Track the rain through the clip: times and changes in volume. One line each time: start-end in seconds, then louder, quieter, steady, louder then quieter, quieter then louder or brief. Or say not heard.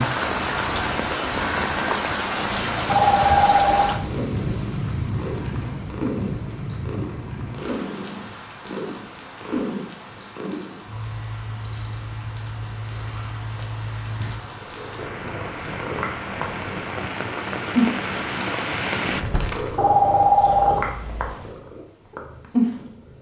0.0-19.2 quieter then louder.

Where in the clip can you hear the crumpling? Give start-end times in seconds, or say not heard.
19.1-19.8.